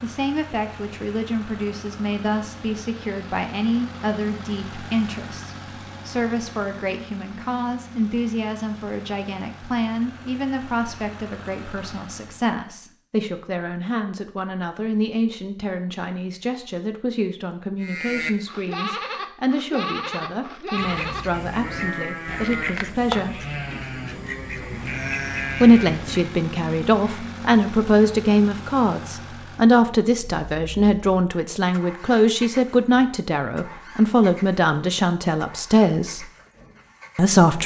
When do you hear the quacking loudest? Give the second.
23 s.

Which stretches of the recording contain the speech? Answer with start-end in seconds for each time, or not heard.
0.0-23.4, 25.6-36.3, 37.1-37.6.